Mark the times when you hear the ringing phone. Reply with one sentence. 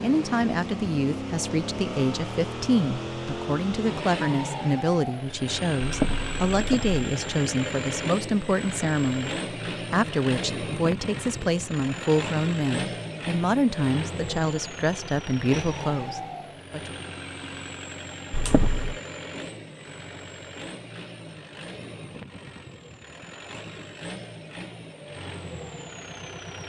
The ringing phone can be heard from 5.8 to 7.0 s and from 18.3 to 19.0 s.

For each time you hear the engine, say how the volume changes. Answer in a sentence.
The engine can be heard from 0.0 to 26.6 s, getting quieter.